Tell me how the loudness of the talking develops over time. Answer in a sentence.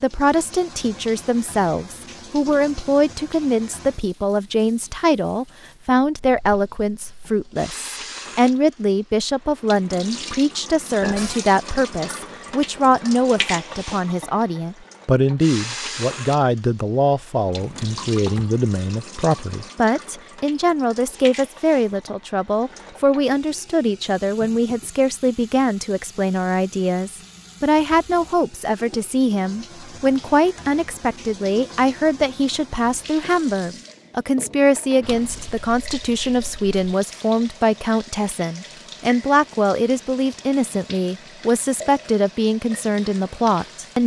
The loudness of the talking stays about the same.